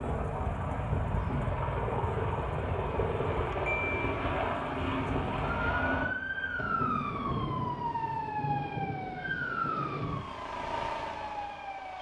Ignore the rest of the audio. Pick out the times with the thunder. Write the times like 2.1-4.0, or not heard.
6.5-10.3.